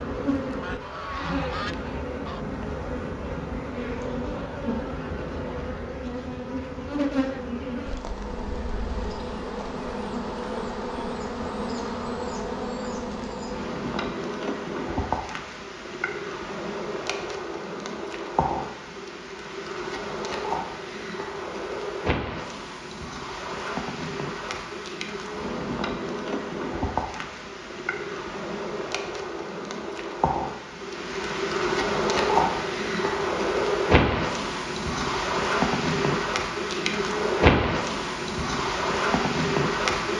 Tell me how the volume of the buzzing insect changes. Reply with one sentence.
The loudness of the buzzing insect goes up.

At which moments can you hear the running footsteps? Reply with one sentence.
You can't hear the running footsteps here.